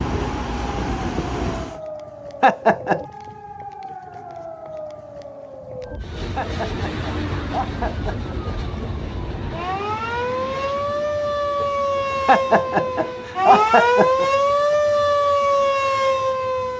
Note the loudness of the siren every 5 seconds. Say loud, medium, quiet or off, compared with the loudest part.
quiet, quiet, loud, loud.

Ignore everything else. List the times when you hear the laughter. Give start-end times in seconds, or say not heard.
2.4-3.0, 6.3-8.6, 12.2-14.3.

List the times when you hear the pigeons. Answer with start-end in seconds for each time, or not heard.
not heard.